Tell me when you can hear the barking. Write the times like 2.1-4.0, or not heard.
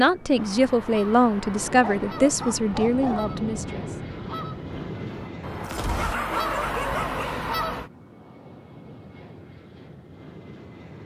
1.8-3.3, 5.8-7.4.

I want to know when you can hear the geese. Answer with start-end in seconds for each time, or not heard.
0.3-7.9.